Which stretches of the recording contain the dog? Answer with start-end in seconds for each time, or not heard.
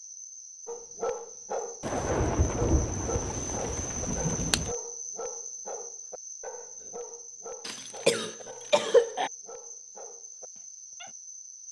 0.7-11.2.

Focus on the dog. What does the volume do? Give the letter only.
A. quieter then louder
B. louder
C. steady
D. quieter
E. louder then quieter
D.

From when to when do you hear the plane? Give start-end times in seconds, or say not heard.
not heard.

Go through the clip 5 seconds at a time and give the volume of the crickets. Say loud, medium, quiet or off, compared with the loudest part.
loud, loud, medium.